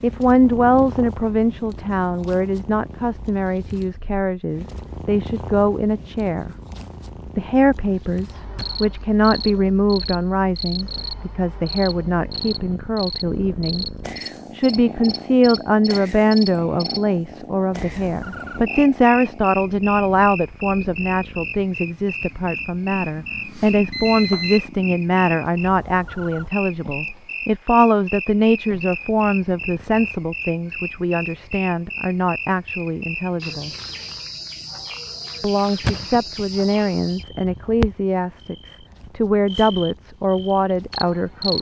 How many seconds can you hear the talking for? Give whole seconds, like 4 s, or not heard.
38 s.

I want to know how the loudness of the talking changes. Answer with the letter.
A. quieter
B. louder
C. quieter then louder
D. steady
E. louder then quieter
D.